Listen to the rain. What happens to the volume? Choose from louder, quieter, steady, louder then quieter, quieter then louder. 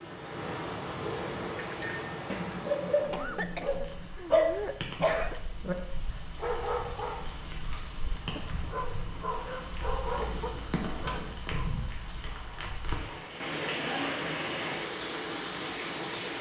quieter then louder.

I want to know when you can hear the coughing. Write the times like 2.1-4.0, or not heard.
3.1-5.4, 8.2-8.7.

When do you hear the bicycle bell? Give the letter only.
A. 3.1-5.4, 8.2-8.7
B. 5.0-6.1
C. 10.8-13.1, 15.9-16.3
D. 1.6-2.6
D.